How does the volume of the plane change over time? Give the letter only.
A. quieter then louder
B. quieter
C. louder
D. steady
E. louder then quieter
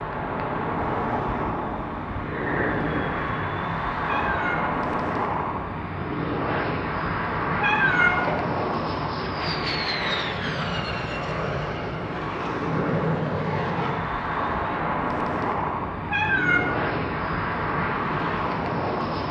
D.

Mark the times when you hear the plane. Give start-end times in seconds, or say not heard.
0.0-19.2.